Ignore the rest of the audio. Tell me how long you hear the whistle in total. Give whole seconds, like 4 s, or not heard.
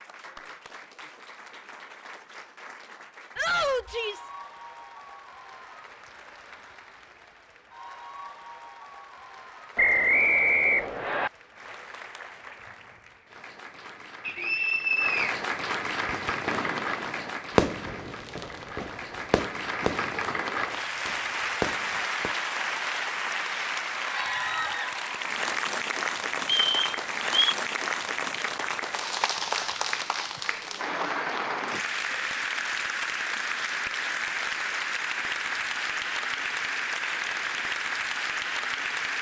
4 s.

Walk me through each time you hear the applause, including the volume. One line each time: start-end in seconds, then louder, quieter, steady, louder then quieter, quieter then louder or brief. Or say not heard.
0.0-39.1 louder.